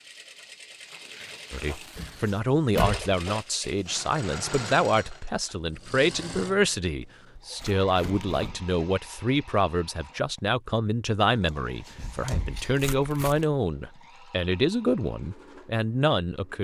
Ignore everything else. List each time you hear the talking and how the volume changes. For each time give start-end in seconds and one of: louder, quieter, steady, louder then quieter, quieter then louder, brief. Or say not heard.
1.5-16.5 steady.